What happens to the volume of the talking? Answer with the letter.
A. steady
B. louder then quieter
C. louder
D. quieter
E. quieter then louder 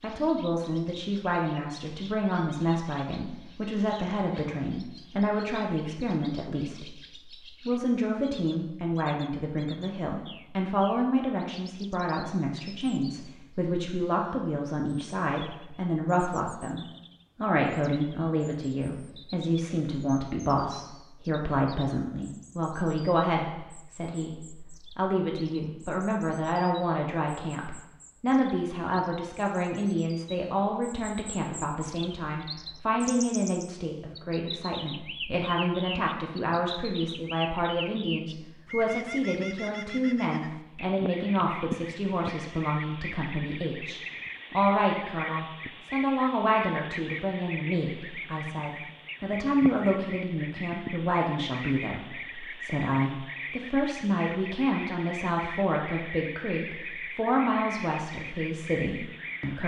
A.